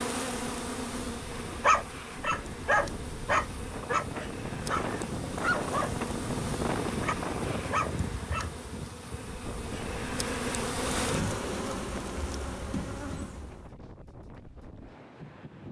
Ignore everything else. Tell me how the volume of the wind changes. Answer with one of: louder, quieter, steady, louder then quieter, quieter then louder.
louder then quieter.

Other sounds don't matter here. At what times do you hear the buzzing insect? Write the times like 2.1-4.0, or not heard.
0.0-13.7.